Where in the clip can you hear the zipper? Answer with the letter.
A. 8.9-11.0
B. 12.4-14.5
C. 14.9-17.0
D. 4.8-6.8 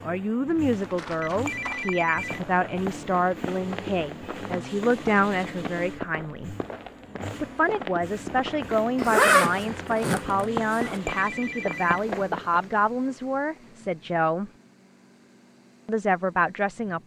A.